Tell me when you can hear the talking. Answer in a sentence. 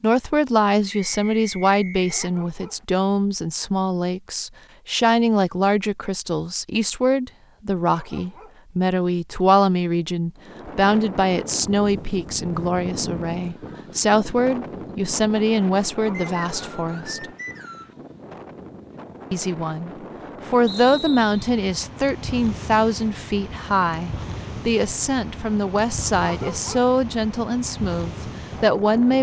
The talking can be heard from 0.0 to 17.2 s and from 19.3 to 29.1 s.